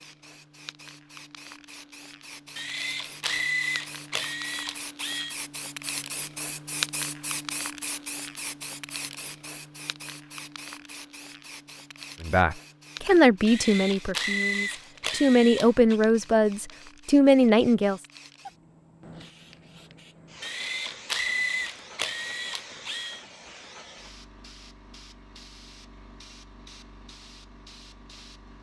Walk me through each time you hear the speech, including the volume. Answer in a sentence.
The speech can be heard from 12.2 to 18.0 s, getting quieter then louder.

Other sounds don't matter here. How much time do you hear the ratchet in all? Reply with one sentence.
The ratchet can be heard for 8 seconds in total.